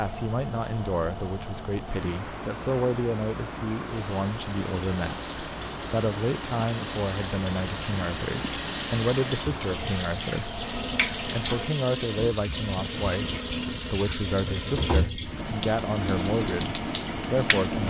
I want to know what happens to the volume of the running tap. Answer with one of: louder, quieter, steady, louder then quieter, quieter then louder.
louder.